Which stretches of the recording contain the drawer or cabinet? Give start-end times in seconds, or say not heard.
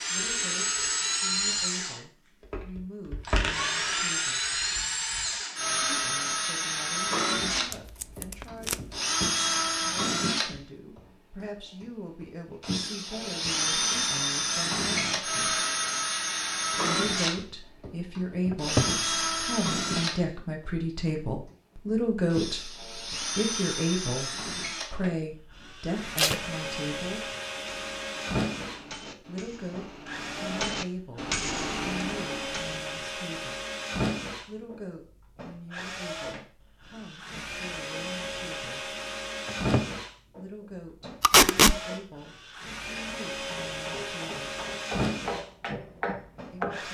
18.5-18.9, 39.5-39.9.